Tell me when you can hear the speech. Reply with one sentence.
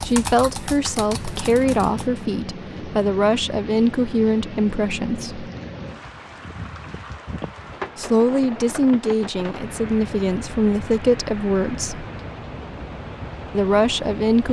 The speech can be heard from 0.0 to 5.5 s, from 8.0 to 12.1 s and from 13.5 to 14.4 s.